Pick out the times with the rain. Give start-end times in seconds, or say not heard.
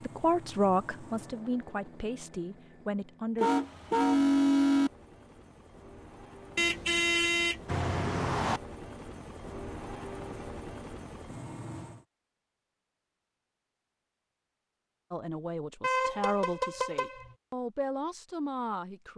not heard.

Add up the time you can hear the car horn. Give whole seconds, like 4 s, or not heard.
5 s.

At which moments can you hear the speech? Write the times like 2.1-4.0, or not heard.
0.0-3.5, 15.1-19.1.